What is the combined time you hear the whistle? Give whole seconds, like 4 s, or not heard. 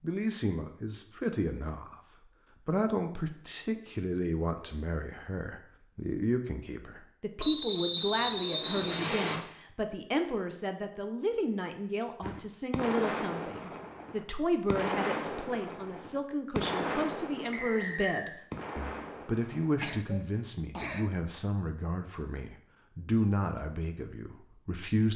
3 s.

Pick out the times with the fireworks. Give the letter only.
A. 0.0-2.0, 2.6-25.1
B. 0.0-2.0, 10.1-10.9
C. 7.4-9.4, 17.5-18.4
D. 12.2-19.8
D.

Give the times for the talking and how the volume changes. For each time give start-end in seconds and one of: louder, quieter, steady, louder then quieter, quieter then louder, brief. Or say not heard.
0.0-2.0 brief
2.6-25.1 steady.